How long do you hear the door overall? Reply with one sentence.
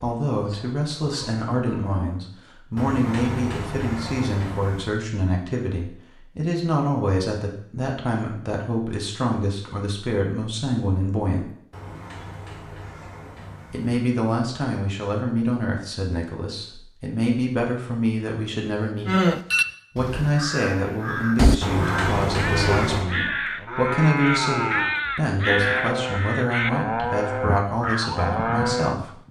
You can hear the door for 6 seconds altogether.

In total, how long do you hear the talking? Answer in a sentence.
The talking can be heard for 26 seconds in total.